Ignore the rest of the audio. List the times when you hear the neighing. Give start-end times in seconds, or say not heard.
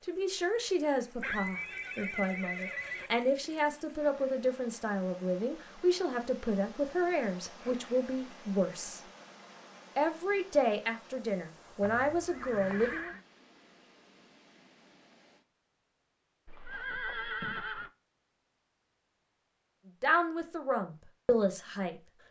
1.2-3.1, 11.8-13.2, 16.4-17.9.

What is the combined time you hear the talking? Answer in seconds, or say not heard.
14 s.